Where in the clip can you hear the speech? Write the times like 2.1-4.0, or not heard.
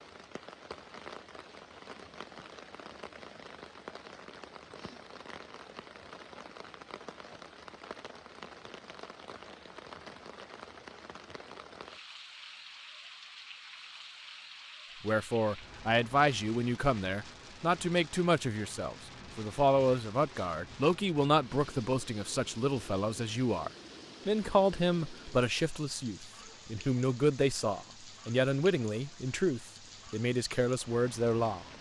15.0-31.6.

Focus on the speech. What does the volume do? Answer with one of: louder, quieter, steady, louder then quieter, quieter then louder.
steady.